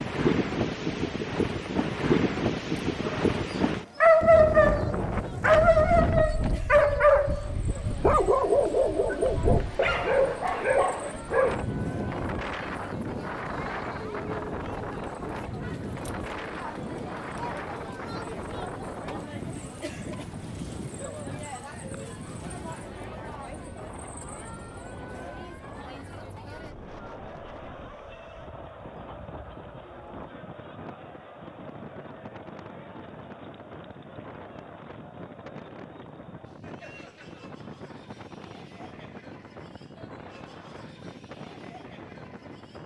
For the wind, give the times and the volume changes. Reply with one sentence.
You can hear the wind from 0.0 to 42.8 s, getting quieter.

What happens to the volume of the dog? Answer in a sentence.
The volume of the dog goes down.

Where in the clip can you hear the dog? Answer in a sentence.
You can hear the dog from 3.0 to 11.6 s.